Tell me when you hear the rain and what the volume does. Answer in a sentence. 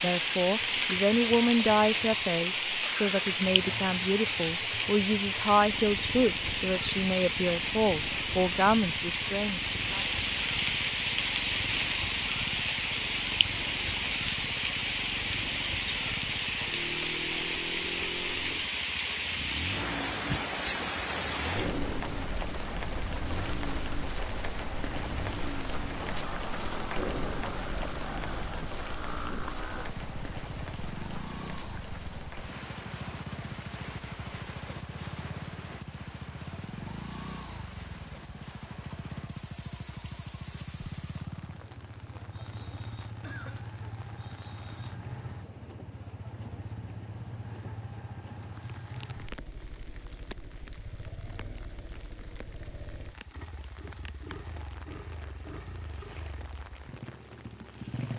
The rain can be heard from 0.0 to 58.1 s, getting quieter.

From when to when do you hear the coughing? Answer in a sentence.
The coughing can be heard from 43.2 to 43.8 s.